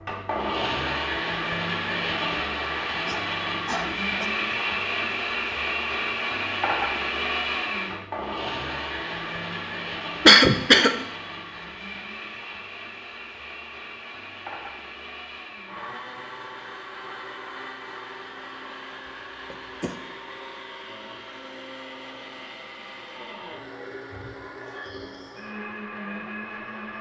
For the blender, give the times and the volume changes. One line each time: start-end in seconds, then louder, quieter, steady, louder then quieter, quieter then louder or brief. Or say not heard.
0.0-26.9 quieter.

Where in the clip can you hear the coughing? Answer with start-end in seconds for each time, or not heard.
3.0-4.3, 10.2-10.9, 19.5-19.9.